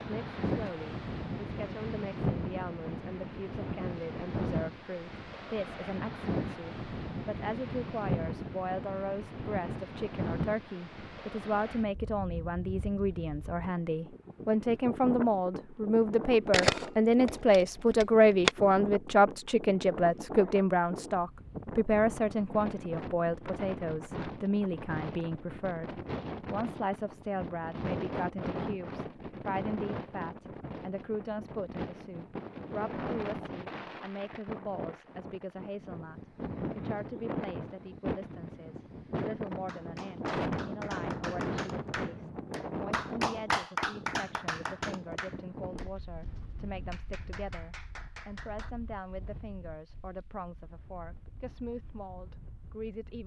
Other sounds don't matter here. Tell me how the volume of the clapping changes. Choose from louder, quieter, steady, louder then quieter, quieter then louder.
louder then quieter.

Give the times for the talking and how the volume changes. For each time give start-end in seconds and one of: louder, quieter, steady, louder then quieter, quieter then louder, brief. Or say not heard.
0.1-53.2 louder then quieter.